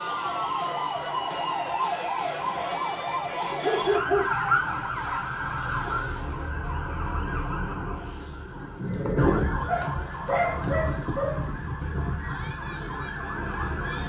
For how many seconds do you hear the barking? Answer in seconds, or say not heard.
3 s.